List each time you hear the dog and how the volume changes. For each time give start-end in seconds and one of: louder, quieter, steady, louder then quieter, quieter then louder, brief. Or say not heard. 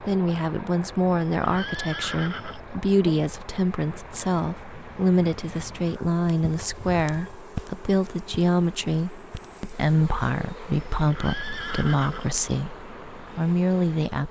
not heard.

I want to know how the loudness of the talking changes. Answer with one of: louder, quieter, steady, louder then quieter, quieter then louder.
steady.